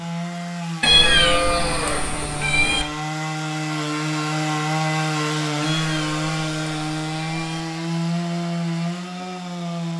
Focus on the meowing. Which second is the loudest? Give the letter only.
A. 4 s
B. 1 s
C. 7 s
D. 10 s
B.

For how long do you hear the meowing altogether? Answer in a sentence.
You can hear the meowing for 4 seconds altogether.